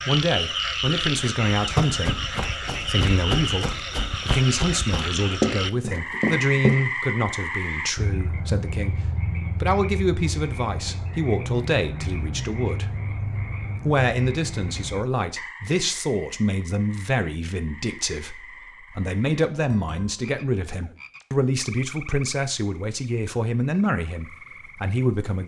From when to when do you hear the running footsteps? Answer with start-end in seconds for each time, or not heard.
1.7-6.8.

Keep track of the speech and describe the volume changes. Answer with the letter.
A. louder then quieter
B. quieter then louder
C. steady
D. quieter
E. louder
C.